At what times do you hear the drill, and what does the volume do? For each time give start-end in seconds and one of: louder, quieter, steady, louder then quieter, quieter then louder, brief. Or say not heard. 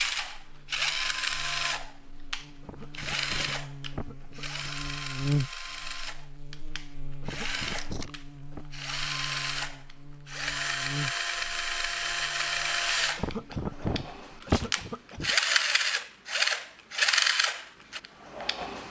0.0-18.8 quieter then louder.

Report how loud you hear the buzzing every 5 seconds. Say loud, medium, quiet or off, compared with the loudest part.
medium, loud, medium, off.